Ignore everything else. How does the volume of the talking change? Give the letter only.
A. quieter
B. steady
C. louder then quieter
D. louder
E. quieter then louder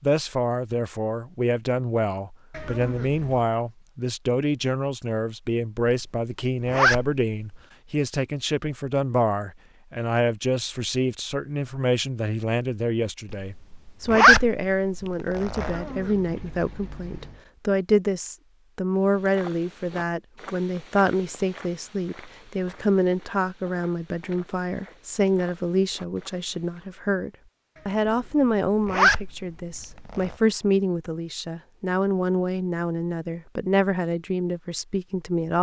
B.